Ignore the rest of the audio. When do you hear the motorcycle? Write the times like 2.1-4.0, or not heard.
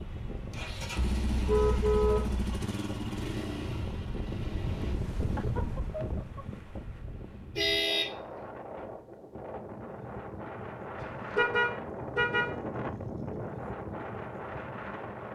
0.0-5.0.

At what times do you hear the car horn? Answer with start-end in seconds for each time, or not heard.
0.9-2.7, 7.5-8.1, 11.3-12.5.